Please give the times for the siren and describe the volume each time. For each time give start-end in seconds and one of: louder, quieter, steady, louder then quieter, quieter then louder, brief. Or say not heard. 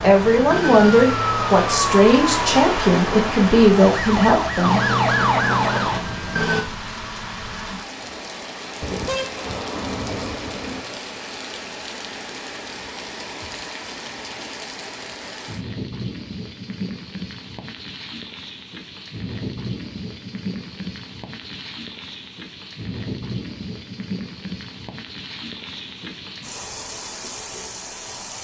0.0-6.7 quieter then louder.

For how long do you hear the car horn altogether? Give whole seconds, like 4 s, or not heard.
2 s.